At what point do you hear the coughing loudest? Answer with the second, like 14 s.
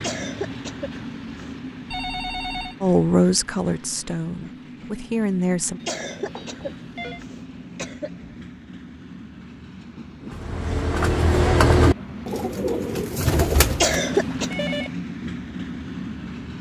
14 s.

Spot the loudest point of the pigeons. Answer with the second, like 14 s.
12 s.